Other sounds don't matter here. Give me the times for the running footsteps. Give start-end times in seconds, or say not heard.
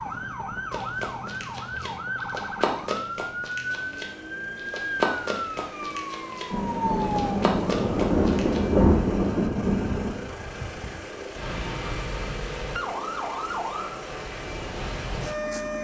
0.7-8.6.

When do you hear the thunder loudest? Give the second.
9 s.